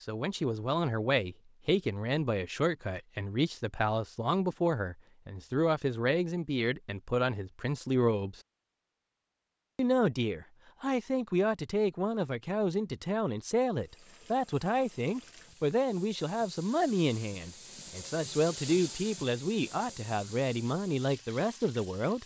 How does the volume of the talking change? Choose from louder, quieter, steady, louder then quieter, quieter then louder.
steady.